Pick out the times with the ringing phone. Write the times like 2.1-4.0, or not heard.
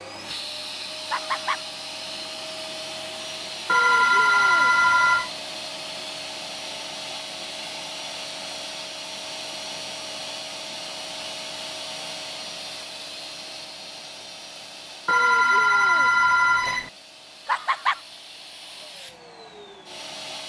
3.6-5.3, 15.1-16.9.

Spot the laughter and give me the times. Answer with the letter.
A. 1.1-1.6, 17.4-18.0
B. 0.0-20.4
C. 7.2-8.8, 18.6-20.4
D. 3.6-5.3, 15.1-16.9
A.